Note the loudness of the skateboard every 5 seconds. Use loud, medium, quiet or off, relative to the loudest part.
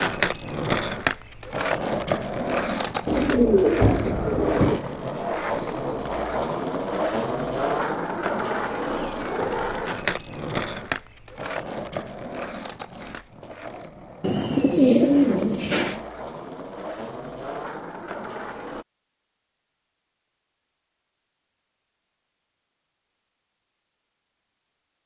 loud, loud, medium, medium, off.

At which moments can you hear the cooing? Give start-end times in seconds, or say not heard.
3.0-4.8, 14.2-16.0.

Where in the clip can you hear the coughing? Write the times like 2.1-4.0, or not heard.
not heard.